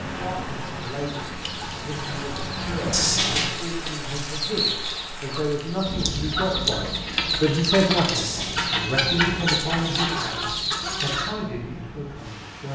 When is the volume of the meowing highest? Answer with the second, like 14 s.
3 s.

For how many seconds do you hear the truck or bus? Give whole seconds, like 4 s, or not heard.
3 s.